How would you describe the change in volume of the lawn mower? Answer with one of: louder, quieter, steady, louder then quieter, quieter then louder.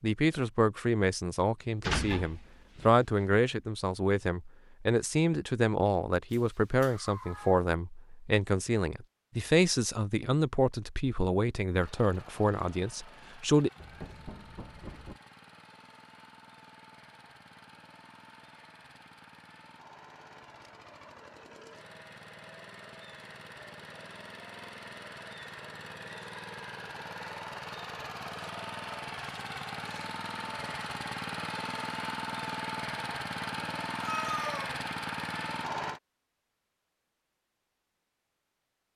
louder.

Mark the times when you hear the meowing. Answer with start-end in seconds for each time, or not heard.
6.3-7.7, 13.8-15.2, 34.0-34.8.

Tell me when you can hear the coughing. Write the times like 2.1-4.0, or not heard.
not heard.